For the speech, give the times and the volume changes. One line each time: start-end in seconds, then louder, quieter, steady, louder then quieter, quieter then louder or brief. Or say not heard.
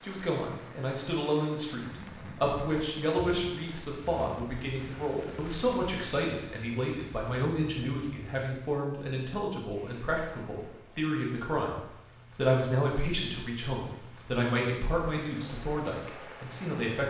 0.0-17.0 steady.